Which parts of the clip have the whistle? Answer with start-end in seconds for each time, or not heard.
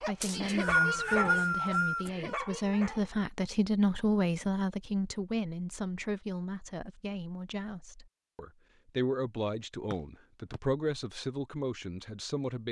0.2-2.1, 9.9-10.6.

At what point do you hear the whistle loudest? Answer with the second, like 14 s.
1 s.